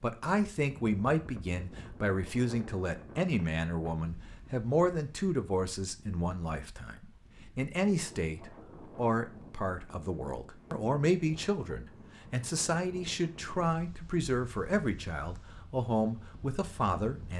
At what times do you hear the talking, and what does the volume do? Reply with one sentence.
You can hear the talking from 0.0 to 17.3 s, at a steady volume.